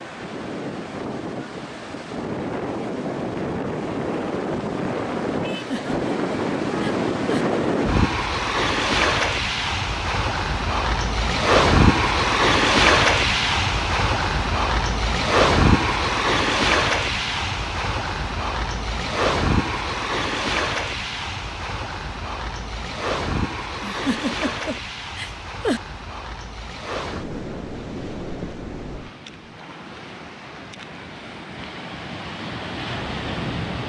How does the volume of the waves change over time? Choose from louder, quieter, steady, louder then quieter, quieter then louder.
louder then quieter.